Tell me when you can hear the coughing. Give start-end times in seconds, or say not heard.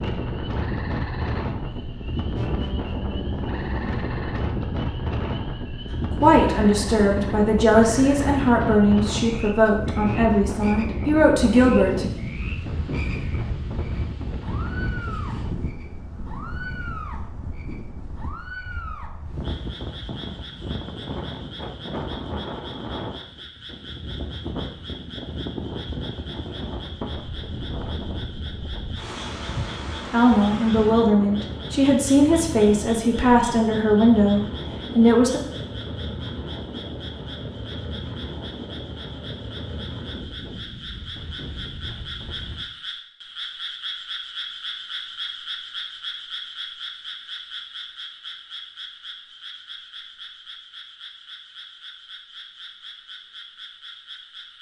not heard.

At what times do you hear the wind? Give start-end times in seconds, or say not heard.
0.0-42.6.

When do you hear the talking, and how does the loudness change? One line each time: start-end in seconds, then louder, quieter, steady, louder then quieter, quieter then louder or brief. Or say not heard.
6.1-12.1 steady
30.1-35.4 steady.